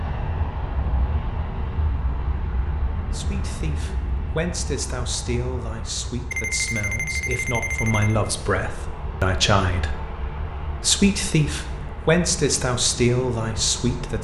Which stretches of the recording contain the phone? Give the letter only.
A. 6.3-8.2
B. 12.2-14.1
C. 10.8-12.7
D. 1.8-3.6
A.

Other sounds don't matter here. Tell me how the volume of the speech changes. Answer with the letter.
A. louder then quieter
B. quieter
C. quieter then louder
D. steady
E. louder
E.